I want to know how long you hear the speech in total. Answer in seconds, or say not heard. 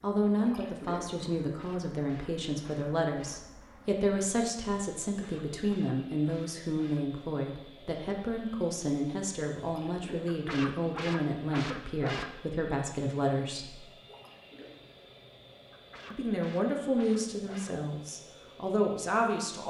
17 s.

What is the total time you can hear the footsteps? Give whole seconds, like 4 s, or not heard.
not heard.